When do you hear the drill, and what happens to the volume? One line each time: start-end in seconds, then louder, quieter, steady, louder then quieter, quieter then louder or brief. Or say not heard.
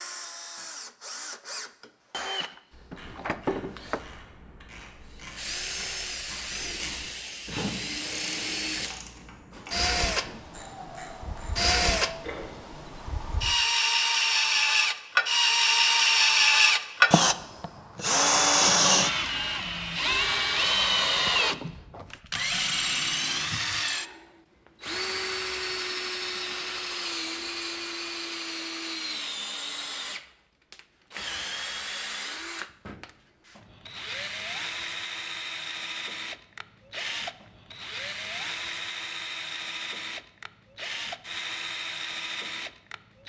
0.0-43.2 louder then quieter.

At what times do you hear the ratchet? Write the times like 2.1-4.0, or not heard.
2.7-12.7.